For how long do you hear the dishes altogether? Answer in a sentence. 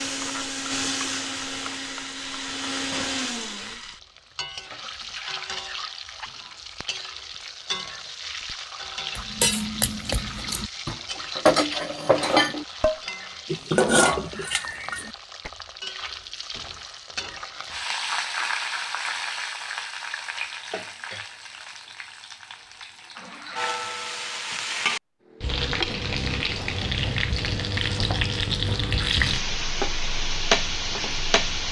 The dishes can be heard for 6 seconds in total.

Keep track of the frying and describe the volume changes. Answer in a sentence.
The loudness of the frying goes up.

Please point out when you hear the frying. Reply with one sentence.
The frying can be heard from 0.0 to 31.6 s.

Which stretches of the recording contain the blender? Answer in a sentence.
The blender can be heard from 0.0 to 3.8 s.